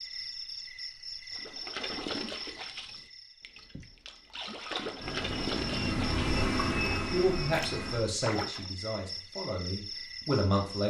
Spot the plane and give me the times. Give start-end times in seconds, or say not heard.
5.0-8.1.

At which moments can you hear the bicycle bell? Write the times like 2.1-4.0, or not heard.
not heard.